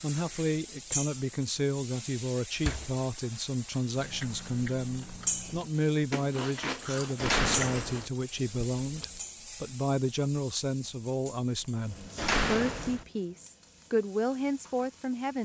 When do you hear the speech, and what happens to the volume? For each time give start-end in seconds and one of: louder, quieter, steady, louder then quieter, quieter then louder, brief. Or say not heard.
0.0-15.4 steady.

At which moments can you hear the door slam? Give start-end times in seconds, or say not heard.
2.5-3.0, 7.2-8.1, 12.2-13.1.